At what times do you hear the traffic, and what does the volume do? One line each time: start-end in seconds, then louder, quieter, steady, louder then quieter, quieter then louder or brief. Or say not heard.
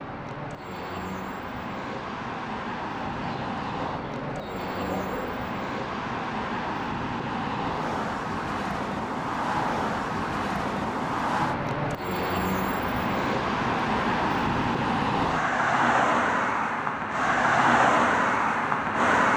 0.0-19.3 louder.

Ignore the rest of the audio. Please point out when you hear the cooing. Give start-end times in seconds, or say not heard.
3.0-5.5.